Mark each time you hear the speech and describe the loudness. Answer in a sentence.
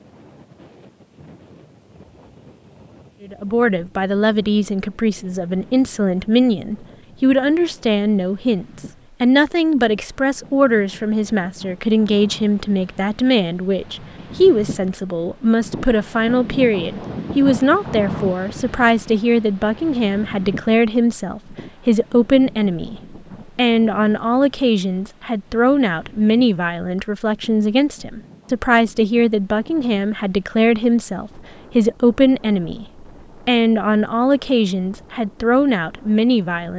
You can hear the speech from 3.2 to 36.7 s, at a steady volume.